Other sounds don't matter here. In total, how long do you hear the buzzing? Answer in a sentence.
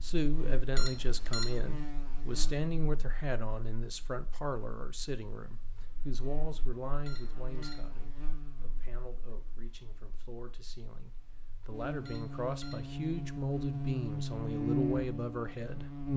You can hear the buzzing for 16 seconds altogether.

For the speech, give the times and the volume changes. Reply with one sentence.
The speech can be heard from 0.0 to 15.8 s, getting quieter then louder.